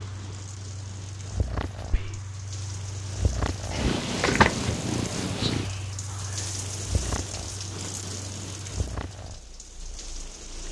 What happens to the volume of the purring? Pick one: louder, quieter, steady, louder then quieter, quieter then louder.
louder then quieter.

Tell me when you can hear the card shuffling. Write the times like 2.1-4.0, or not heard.
3.8-4.8.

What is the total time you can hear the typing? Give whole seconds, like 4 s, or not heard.
not heard.